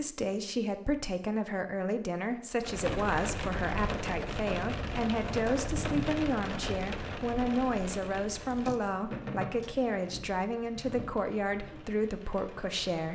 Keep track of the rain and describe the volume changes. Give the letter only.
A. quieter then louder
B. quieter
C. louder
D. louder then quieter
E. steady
B.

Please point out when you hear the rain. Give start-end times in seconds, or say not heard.
2.6-13.1.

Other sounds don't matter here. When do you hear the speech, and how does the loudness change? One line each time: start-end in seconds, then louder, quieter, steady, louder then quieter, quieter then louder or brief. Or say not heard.
0.0-13.1 steady.